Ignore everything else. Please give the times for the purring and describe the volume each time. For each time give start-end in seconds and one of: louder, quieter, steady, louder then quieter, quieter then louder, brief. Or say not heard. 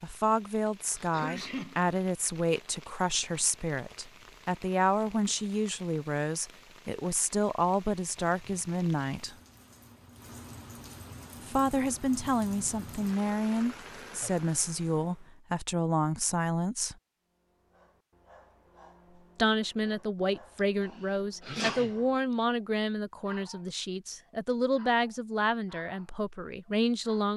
not heard.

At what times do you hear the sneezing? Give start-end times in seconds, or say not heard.
0.9-1.8, 21.4-21.9.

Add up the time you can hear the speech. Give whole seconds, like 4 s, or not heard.
23 s.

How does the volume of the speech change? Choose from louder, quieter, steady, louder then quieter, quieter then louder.
steady.